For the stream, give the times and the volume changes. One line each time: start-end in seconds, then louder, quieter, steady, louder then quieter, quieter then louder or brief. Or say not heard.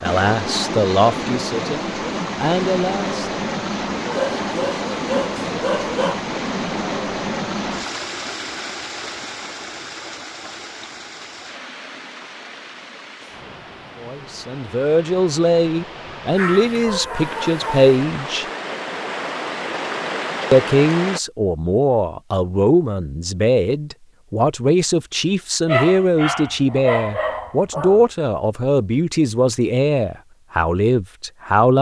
0.0-21.2 quieter then louder.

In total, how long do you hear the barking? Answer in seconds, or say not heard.
6 s.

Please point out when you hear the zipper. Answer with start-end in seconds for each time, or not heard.
not heard.